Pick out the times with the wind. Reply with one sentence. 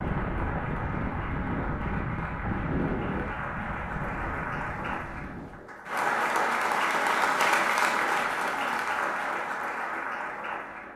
The wind can be heard from 0.0 to 5.7 s.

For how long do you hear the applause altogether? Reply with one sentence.
The applause can be heard for 11 seconds in total.